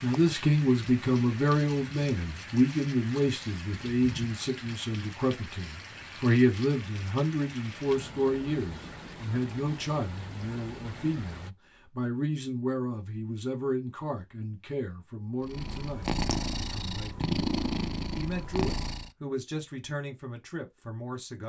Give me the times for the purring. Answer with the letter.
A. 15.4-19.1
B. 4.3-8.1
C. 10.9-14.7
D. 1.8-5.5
A.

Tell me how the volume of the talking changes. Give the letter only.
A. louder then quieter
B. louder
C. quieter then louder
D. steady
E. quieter
E.